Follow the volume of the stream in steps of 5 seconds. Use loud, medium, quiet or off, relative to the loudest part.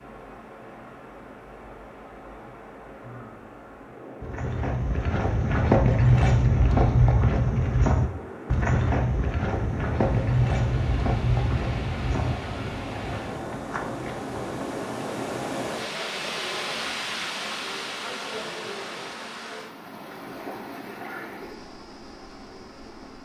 medium, medium, loud, loud, medium.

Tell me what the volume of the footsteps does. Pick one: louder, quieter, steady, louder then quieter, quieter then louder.
quieter.